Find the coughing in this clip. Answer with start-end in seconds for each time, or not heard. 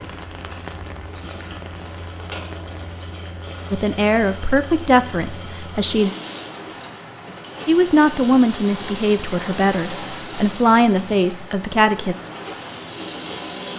not heard.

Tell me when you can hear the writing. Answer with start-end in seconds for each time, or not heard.
not heard.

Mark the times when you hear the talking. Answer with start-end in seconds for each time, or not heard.
3.7-6.1, 7.7-12.2.